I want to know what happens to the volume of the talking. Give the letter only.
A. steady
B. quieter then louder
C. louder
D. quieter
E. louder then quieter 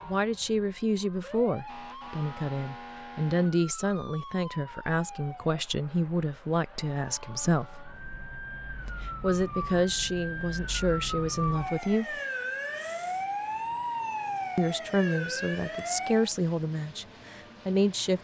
A.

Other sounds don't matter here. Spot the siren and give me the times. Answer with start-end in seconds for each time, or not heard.
0.0-16.3.